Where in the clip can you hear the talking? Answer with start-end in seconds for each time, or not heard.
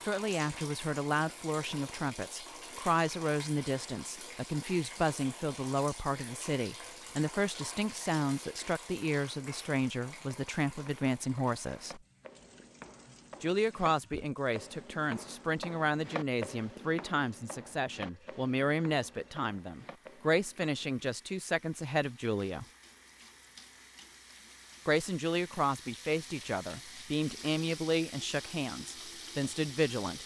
0.1-12.0, 13.4-22.6, 24.9-30.2.